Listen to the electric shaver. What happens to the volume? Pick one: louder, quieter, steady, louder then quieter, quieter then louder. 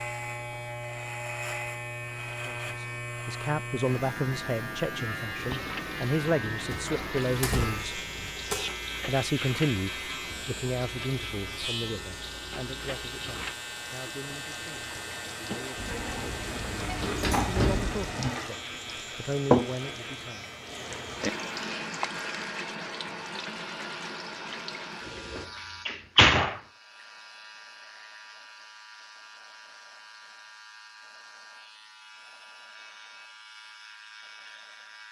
quieter.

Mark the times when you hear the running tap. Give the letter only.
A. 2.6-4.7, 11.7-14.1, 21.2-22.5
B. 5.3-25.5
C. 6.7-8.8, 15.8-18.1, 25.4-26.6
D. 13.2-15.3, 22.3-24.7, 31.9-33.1
B.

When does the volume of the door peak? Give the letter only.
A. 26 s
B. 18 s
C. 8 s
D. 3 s
A.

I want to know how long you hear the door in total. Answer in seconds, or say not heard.
6 s.